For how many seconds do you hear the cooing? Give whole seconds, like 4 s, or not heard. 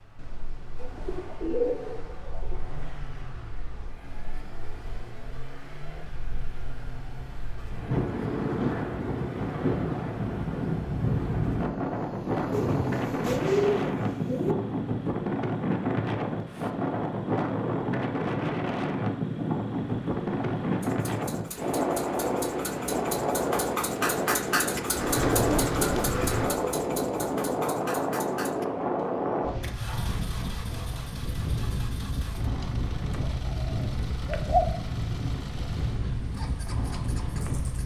7 s.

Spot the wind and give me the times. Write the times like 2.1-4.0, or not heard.
0.0-37.8.